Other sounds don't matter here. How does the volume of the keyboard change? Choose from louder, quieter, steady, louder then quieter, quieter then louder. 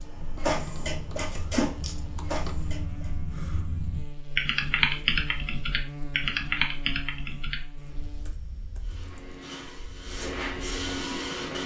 louder then quieter.